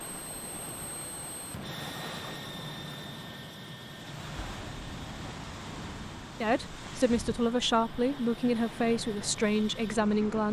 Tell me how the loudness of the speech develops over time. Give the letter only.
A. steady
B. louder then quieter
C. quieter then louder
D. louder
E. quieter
A.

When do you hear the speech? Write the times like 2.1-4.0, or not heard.
6.4-10.4.